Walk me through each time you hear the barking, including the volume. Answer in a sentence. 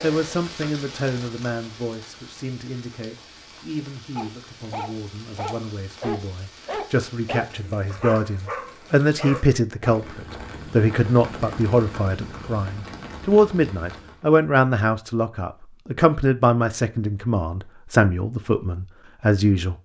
You can hear the barking from 4.2 to 9.9 s, at a steady volume.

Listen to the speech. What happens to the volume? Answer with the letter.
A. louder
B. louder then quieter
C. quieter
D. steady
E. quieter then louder
A.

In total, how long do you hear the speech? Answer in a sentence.
The speech can be heard for 20 seconds in total.